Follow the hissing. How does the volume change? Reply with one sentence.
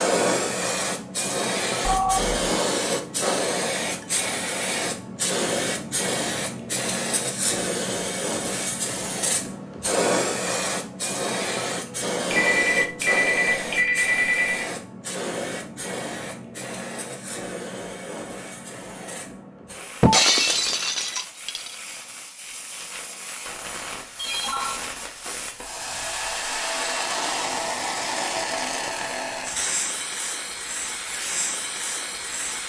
The volume of the hissing goes down, then up.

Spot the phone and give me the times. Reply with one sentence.
The phone can be heard from 1.8 to 2.4 s, from 12.2 to 14.7 s and from 24.1 to 24.9 s.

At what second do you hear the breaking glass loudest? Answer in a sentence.
The loudest moment of the breaking glass is at 20 seconds.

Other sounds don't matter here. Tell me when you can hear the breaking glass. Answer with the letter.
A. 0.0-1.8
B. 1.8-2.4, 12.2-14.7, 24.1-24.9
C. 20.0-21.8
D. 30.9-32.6
C.